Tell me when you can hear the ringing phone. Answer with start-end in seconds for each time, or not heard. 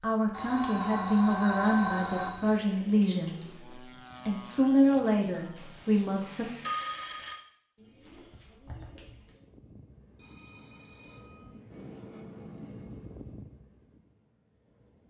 0.3-2.6, 5.5-7.3, 10.2-11.6.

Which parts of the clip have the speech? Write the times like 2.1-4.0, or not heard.
0.0-6.5.